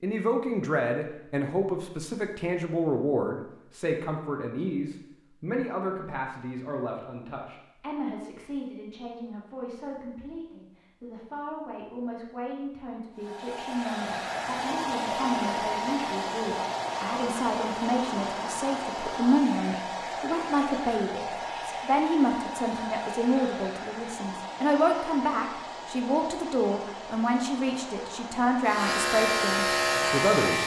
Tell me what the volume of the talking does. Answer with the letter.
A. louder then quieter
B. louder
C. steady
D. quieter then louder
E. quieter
D.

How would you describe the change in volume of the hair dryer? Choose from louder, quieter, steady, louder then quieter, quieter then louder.
quieter.